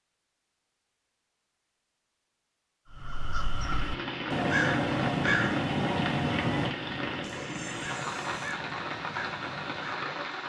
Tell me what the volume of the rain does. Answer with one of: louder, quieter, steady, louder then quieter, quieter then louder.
steady.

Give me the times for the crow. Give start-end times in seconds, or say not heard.
2.9-10.2.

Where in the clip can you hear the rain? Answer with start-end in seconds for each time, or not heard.
3.4-10.4.